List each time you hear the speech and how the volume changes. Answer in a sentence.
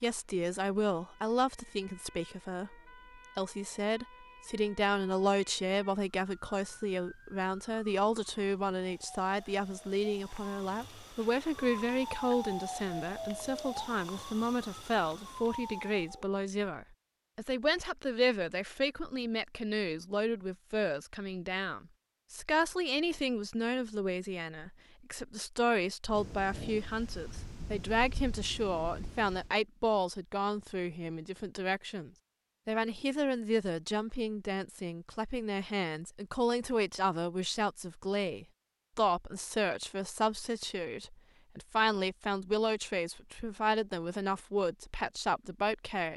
You can hear the speech briefly from 0.0 to 2.8 s; and from 3.4 to 46.1 s, at a steady volume.